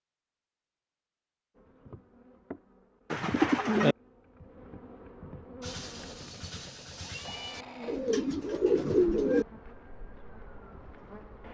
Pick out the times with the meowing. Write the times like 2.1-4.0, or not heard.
5.6-7.7.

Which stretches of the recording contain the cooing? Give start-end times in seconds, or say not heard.
3.1-4.0, 7.8-9.4.